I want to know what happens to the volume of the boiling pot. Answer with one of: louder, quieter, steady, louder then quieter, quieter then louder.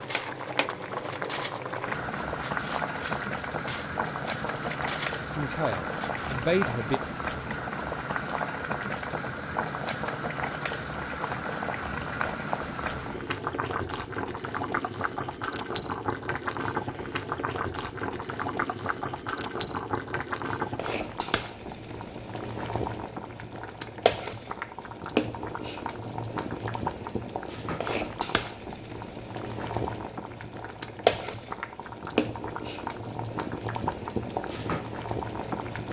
steady.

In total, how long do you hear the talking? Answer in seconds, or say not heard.
2 s.